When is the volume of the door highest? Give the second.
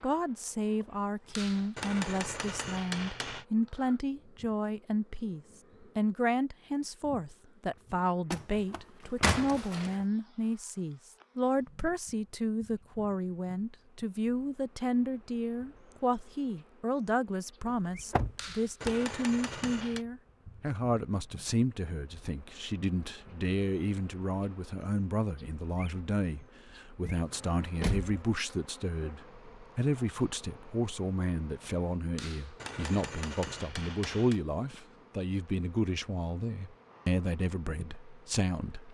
9 s.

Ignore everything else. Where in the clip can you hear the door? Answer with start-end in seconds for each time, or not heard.
8.3-10.1, 18.1-18.9, 27.0-28.1.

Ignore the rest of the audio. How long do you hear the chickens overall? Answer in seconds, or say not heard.
not heard.